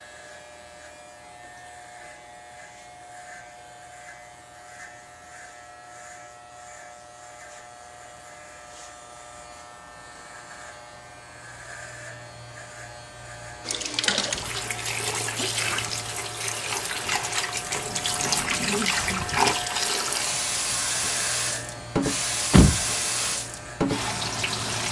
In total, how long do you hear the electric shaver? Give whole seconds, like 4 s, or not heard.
25 s.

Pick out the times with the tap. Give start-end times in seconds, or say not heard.
13.7-24.8.